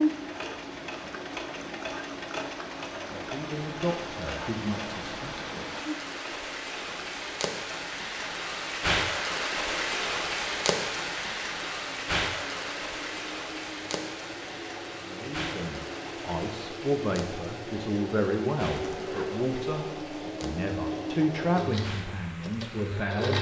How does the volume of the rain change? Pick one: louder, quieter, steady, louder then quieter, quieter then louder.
louder then quieter.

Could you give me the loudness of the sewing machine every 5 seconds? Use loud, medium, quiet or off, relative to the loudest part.
loud, medium, medium, loud, loud.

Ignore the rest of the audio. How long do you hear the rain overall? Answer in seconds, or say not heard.
23 s.